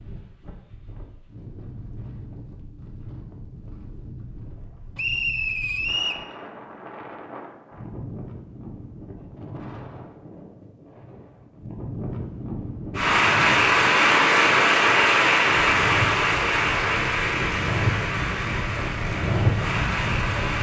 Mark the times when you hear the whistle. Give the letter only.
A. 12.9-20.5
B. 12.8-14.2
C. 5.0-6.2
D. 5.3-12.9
C.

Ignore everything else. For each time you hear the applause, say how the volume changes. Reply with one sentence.
The applause can be heard from 12.9 to 20.5 s, getting quieter.